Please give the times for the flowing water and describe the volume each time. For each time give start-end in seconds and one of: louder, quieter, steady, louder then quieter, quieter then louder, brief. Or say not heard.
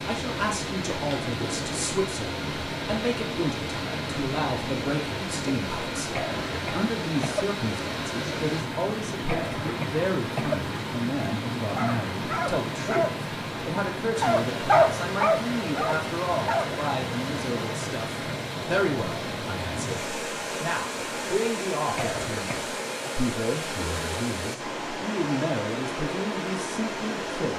0.0-27.5 steady.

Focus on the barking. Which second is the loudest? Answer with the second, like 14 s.
15 s.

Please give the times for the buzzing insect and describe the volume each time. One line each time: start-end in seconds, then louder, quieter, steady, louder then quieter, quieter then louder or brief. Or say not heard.
not heard.